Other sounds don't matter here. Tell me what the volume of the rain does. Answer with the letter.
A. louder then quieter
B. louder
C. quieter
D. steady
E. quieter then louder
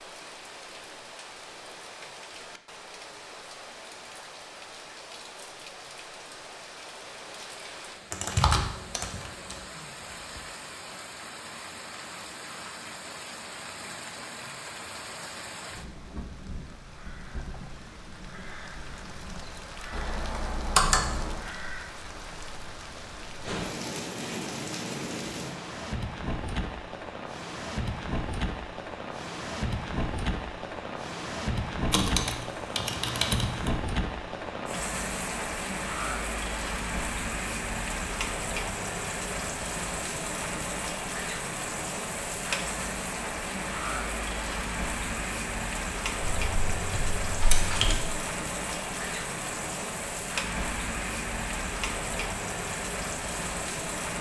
B.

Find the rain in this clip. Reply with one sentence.
You can hear the rain from 0.0 to 54.1 s.